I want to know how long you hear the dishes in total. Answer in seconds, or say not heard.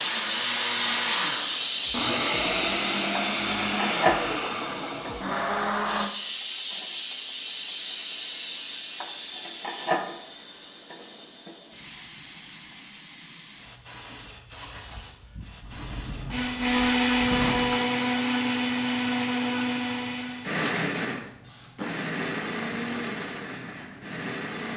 not heard.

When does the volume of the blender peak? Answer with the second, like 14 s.
17 s.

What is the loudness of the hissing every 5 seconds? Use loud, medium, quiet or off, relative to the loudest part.
loud, medium, quiet, quiet, quiet.